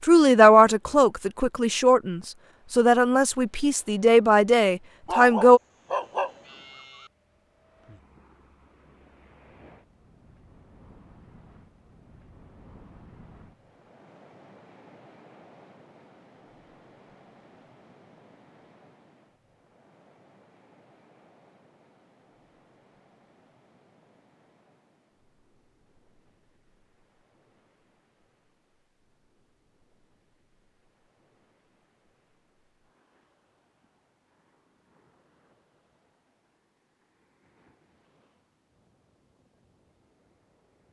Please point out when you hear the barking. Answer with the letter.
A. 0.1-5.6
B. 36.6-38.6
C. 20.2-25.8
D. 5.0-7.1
D.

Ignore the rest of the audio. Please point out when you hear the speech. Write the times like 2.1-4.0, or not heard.
0.1-5.6.